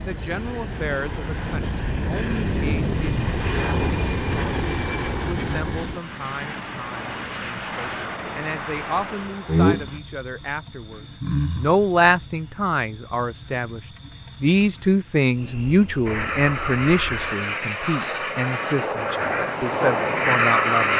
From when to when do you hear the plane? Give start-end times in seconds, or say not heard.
0.0-10.0, 16.1-20.9.